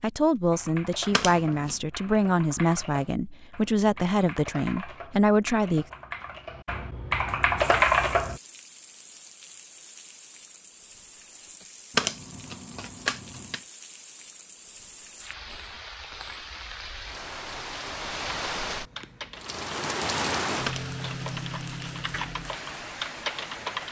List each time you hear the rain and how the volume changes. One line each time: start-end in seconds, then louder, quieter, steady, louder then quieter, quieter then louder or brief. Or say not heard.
7.5-23.8 louder.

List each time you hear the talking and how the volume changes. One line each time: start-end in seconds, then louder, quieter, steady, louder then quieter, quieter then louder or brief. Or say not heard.
0.0-5.8 steady.